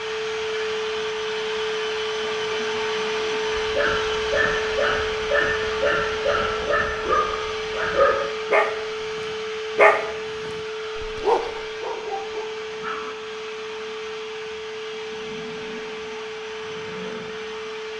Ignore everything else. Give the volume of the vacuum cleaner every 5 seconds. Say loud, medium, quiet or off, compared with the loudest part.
loud, loud, medium, medium.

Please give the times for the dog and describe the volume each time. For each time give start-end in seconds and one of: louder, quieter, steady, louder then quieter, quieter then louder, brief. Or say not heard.
3.5-13.2 louder then quieter.